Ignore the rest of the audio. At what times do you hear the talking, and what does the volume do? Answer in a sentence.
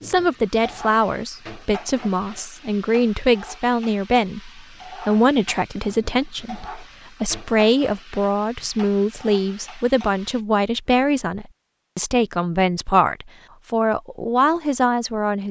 The talking can be heard from 0.0 to 15.4 s, at a steady volume.